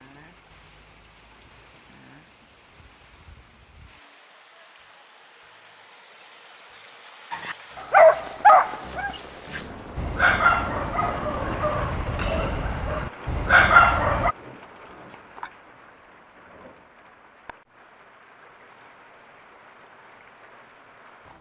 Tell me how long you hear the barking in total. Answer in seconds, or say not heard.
7 s.